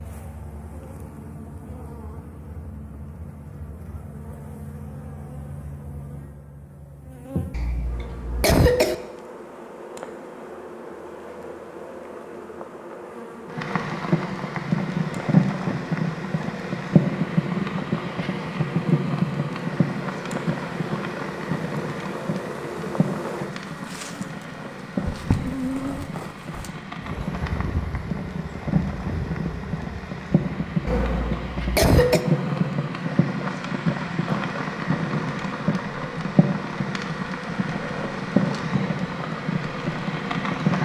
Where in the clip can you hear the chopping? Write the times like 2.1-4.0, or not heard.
not heard.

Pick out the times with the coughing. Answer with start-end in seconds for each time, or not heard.
7.5-8.9, 30.9-32.2.